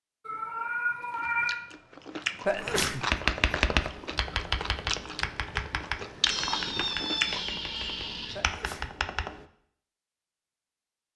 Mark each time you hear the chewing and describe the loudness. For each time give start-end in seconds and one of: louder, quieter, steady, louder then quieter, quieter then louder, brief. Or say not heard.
1.0-7.4 quieter then louder.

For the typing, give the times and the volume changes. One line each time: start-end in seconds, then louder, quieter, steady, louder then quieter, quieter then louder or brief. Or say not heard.
3.0-9.4 quieter.